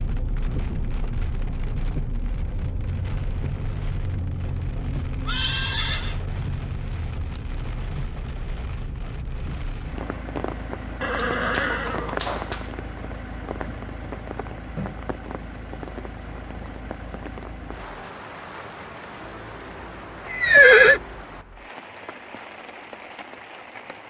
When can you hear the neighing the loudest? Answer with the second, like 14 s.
21 s.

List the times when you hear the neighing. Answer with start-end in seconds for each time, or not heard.
5.2-6.2, 11.0-12.7, 20.2-21.0.